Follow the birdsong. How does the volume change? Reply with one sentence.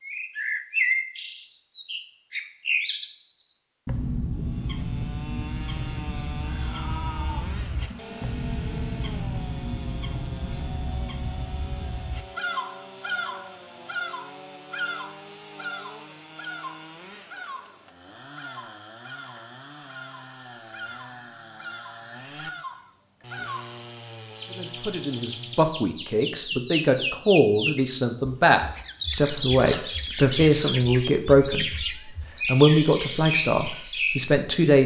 The volume of the birdsong goes down, then up.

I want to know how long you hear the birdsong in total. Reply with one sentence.
The birdsong can be heard for 35 seconds in total.